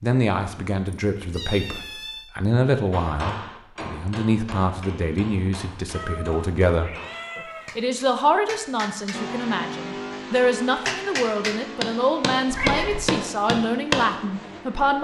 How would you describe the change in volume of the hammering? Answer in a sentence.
The volume of the hammering goes down, then up.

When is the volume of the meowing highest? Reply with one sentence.
The volume of the meowing peaks at 13 seconds.